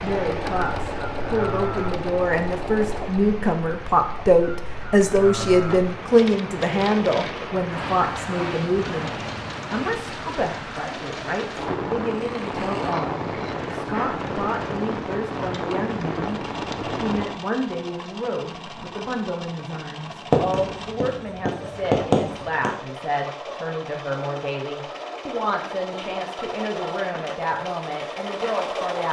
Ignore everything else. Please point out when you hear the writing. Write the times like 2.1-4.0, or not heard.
20.3-22.7.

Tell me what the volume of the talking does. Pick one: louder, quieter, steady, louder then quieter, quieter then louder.
quieter.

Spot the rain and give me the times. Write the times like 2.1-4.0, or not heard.
0.0-17.4.